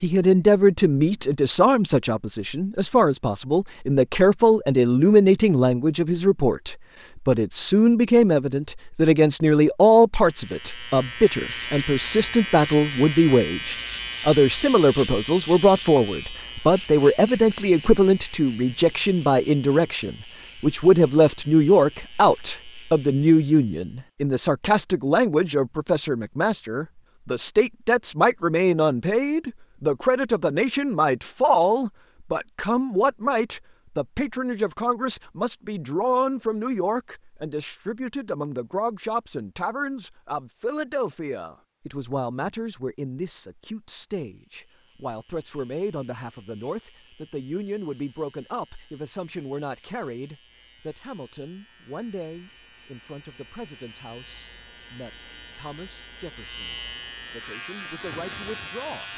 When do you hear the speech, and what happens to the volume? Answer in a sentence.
You can hear the speech from 0.0 to 59.1 s, getting quieter.